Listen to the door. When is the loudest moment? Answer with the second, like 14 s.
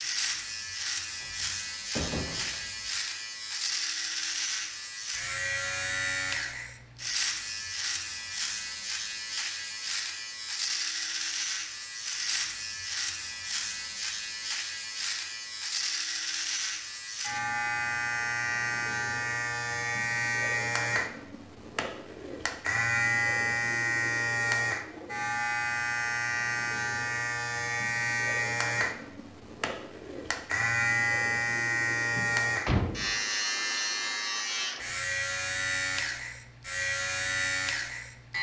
33 s.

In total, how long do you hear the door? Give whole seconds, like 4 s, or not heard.
3 s.